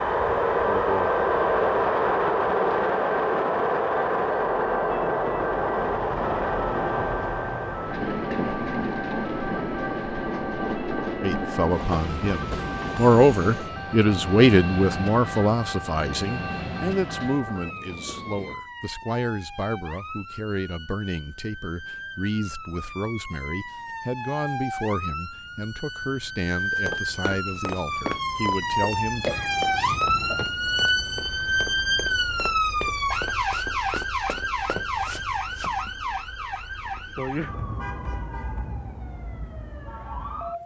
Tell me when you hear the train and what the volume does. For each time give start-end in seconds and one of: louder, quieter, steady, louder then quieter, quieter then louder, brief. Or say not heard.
0.0-18.6 quieter.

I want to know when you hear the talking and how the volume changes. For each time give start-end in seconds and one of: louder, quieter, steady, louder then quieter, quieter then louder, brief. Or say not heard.
11.2-29.2 quieter.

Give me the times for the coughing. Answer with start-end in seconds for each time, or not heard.
29.2-30.5.